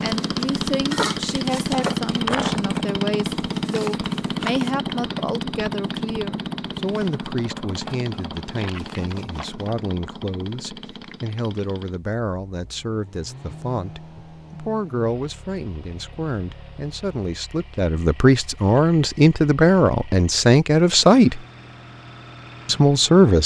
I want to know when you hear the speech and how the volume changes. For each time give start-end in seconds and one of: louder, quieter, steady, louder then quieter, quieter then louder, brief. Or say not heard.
0.0-21.4 louder
22.6-23.4 brief.